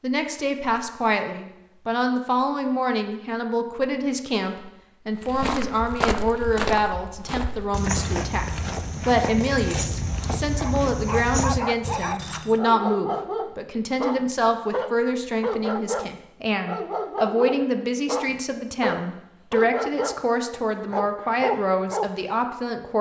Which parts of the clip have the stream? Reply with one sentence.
You can't hear the stream here.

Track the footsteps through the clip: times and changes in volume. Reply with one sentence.
The footsteps can be heard from 5.2 to 12.6 s, at a steady volume.